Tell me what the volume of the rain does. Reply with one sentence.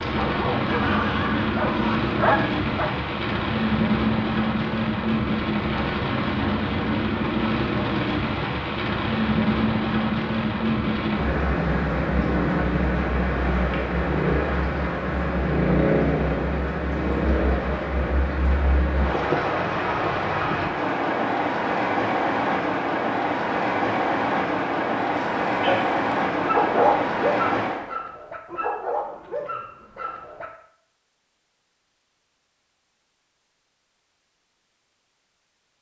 The loudness of the rain stays about the same.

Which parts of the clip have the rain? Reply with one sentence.
You can hear the rain from 0.0 to 27.9 s.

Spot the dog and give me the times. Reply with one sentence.
The dog can be heard from 0.0 to 2.9 s and from 25.1 to 30.5 s.